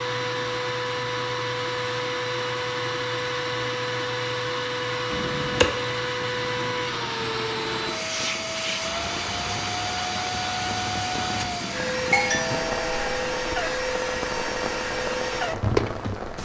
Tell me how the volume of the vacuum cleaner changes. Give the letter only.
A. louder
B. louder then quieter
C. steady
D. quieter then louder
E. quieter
C.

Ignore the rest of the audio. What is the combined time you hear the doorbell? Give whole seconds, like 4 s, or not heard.
2 s.